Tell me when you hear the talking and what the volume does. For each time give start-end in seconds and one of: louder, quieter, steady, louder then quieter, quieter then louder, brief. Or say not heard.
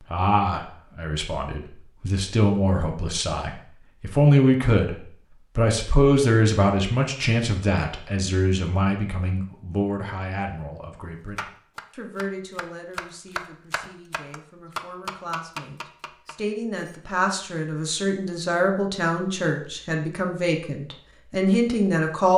0.0-22.3 quieter then louder.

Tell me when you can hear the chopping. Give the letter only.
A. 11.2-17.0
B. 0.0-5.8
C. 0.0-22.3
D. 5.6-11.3
A.